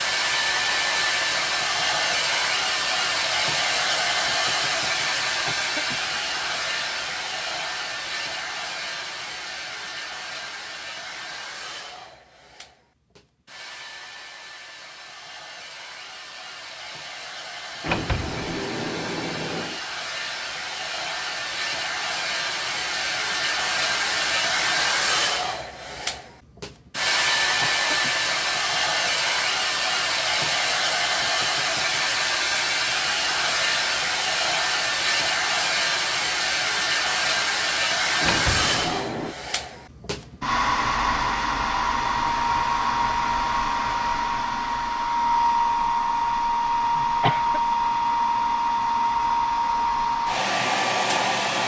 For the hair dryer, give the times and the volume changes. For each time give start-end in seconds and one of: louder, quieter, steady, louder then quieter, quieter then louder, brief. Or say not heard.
0.0-51.6 quieter then louder.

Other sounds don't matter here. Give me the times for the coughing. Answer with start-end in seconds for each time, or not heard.
5.2-6.2, 27.3-28.2, 47.0-47.6.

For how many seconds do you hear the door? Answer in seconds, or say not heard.
3 s.